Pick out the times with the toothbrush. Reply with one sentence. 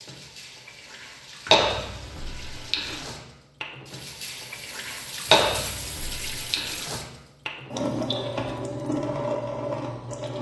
You can't hear the toothbrush here.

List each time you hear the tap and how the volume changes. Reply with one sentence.
The tap can be heard from 0.0 to 10.3 s, getting louder.